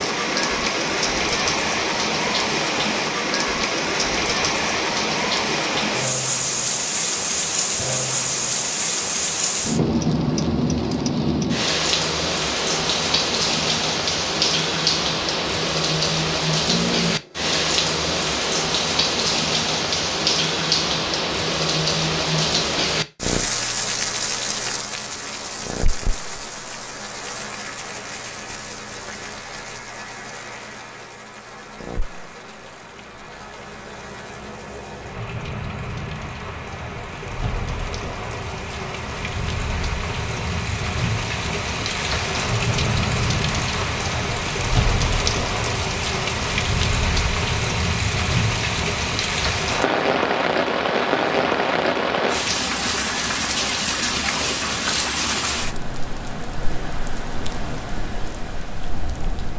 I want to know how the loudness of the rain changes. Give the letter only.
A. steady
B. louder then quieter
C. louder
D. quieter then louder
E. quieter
D.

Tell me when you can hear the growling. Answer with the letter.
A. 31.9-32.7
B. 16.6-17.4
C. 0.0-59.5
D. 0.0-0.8
B.